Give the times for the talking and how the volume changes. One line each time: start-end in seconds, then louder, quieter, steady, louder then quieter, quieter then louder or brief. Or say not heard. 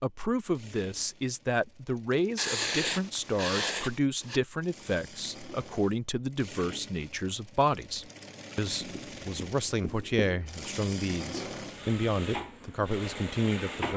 0.0-13.9 steady.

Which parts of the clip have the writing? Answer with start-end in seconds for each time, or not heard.
2.4-4.4, 8.8-10.4.